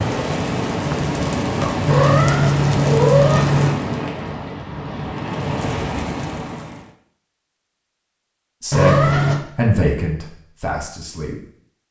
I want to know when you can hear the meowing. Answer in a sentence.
The meowing can be heard from 1.9 to 3.8 s and from 8.7 to 9.4 s.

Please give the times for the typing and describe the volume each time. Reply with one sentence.
The typing can't be heard in this clip.